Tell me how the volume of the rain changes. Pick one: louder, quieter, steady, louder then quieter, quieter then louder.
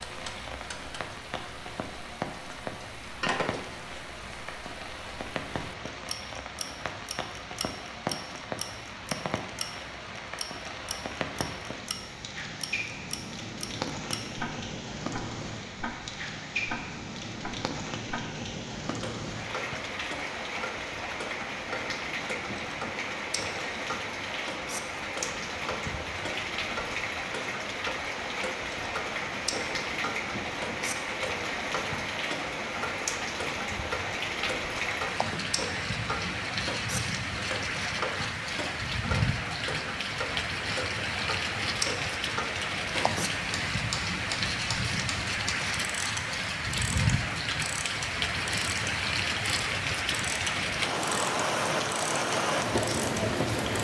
louder.